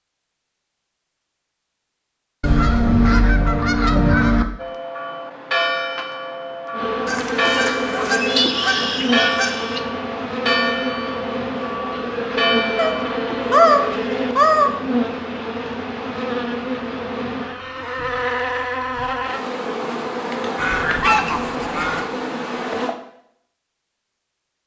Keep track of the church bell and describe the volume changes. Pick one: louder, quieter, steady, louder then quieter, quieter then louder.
steady.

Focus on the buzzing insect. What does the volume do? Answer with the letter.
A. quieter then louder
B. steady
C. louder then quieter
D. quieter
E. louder
B.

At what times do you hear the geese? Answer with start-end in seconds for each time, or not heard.
2.4-4.5, 7.0-9.8, 12.8-14.7, 20.6-22.1.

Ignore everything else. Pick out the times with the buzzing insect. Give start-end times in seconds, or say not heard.
6.7-22.9.